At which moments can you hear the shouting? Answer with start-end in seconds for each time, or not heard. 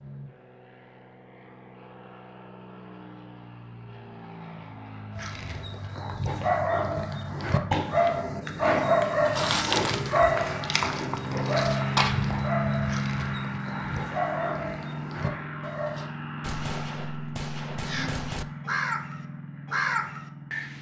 not heard.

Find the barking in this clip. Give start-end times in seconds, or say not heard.
5.1-16.1.